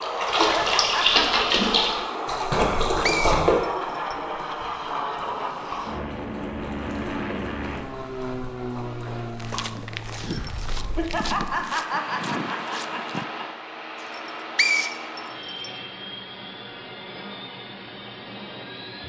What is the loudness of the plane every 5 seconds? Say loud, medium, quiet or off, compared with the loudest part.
loud, loud, medium, medium.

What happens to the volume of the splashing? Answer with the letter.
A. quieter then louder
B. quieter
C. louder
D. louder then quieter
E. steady
B.